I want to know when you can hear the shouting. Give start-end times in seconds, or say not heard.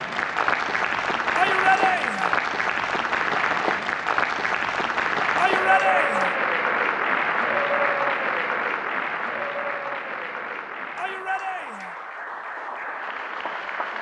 1.4-2.4, 5.3-6.3, 10.9-11.9.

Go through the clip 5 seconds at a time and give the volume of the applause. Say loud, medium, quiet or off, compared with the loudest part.
loud, loud, medium.